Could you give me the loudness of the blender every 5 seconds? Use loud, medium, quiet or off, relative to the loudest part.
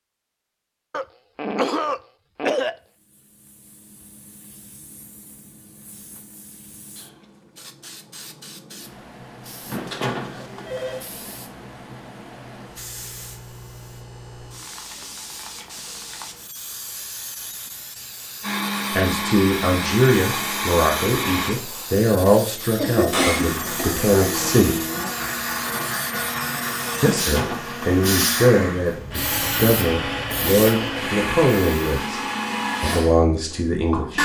off, off, off, loud, loud, loud, loud.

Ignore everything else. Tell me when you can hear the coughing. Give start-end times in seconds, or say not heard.
0.9-2.8, 22.8-24.1.